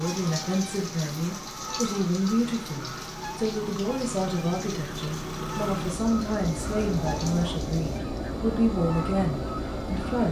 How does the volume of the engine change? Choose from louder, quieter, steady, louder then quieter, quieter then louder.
louder.